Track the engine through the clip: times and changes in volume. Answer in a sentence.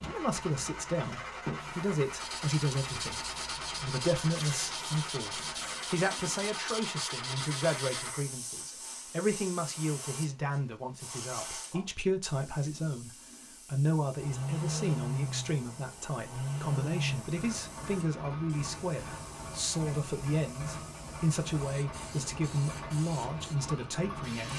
You can hear the engine from 0.0 to 8.2 s, at a steady volume; and from 14.2 to 24.5 s, getting quieter.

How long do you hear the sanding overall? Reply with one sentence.
You can hear the sanding for 6 seconds altogether.